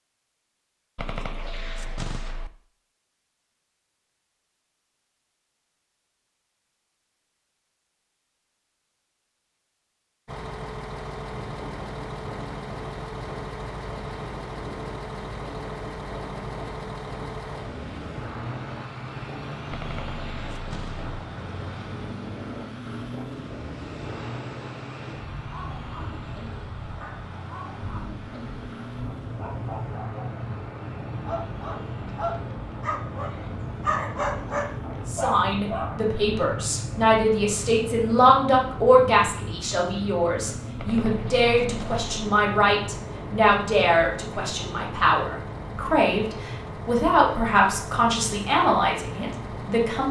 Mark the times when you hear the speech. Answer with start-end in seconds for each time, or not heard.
35.0-50.0.